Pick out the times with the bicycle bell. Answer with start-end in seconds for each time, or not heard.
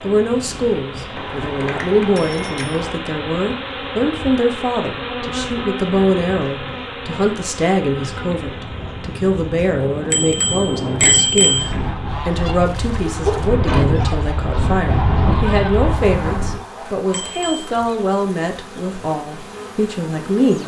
1.1-3.0, 10.1-11.7, 17.1-17.7.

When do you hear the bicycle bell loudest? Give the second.
11 s.